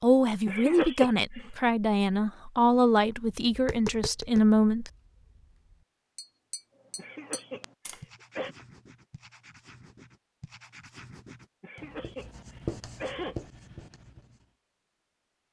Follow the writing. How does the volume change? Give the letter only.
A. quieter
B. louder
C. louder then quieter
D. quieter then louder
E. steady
B.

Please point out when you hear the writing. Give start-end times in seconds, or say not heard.
6.8-14.4.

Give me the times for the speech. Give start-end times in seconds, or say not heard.
0.0-4.9.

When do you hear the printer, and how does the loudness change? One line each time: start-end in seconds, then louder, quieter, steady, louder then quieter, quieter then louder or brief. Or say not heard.
not heard.